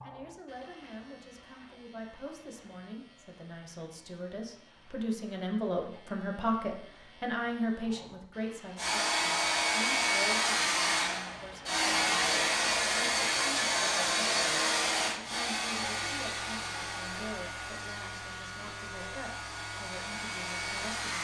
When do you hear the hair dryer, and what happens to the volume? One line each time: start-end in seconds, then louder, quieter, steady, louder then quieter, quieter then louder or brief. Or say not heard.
8.8-21.1 quieter.